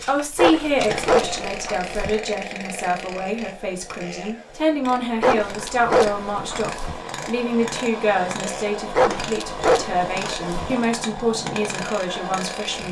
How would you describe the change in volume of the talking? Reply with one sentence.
The volume of the talking stays about the same.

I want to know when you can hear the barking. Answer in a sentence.
The barking can be heard from 0.3 to 2.2 s, from 5.2 to 7.0 s and from 8.9 to 10.8 s.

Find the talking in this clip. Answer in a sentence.
The talking can be heard from 0.1 to 12.8 s.